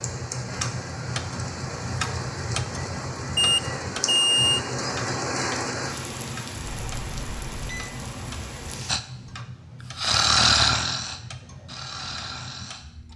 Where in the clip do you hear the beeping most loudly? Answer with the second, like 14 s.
4 s.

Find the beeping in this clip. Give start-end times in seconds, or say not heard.
3.4-4.6, 6.7-7.9.